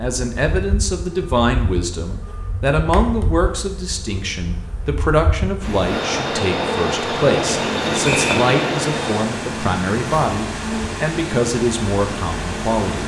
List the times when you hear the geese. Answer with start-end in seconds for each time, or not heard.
not heard.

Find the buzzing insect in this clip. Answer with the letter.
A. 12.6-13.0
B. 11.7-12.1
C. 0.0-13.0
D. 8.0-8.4
C.